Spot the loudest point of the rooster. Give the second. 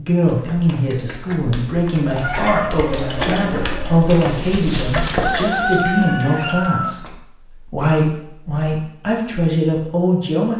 6 s.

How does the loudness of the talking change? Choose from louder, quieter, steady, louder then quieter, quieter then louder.
steady.